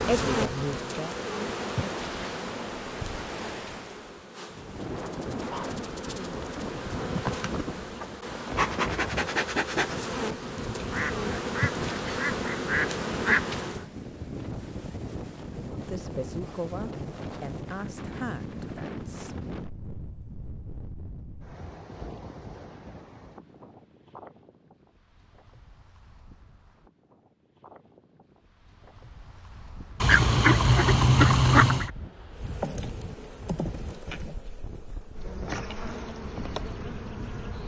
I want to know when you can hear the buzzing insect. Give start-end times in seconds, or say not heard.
0.0-13.8, 32.4-37.6.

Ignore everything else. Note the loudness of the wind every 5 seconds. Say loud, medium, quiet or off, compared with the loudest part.
loud, loud, loud, loud, medium, quiet, medium, medium.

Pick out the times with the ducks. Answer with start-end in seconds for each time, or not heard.
10.9-13.6, 30.0-31.9.